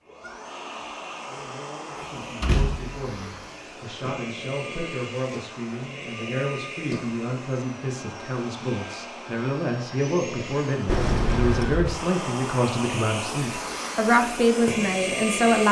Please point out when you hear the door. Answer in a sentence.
The door can be heard from 1.9 to 3.4 s and from 10.8 to 11.9 s.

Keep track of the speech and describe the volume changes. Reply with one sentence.
The volume of the speech goes up.